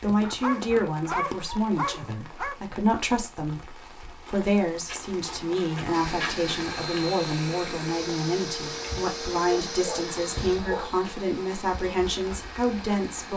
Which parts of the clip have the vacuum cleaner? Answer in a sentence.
The vacuum cleaner can be heard from 5.9 to 13.3 s.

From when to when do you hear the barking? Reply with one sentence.
You can hear the barking from 0.2 to 2.6 s and from 9.5 to 11.0 s.